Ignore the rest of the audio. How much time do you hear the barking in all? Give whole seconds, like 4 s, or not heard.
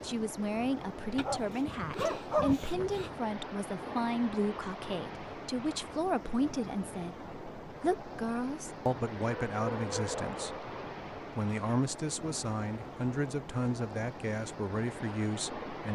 3 s.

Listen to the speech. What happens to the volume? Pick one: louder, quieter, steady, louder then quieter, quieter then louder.
steady.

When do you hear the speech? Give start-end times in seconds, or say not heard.
0.0-10.7, 11.3-15.9.